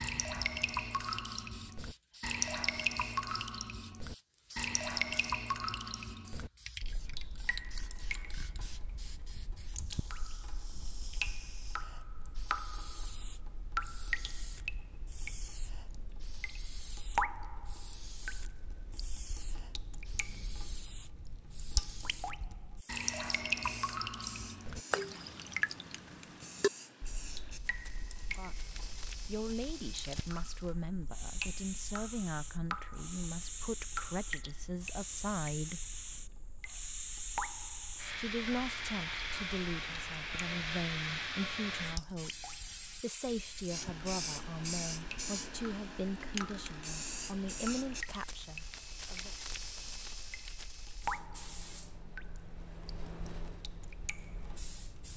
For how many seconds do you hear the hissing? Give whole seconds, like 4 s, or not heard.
55 s.